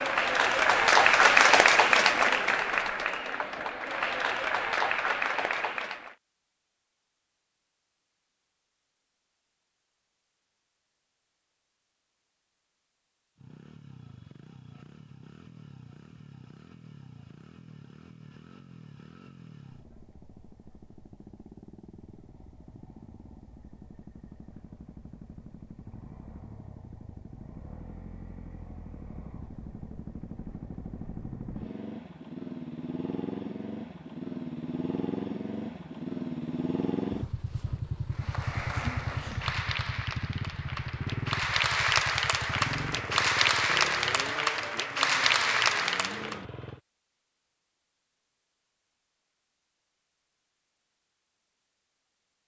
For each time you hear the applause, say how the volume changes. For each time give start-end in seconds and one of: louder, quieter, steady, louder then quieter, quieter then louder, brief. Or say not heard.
0.0-6.2 quieter
38.2-46.4 louder.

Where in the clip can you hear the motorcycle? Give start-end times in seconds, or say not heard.
13.3-46.8.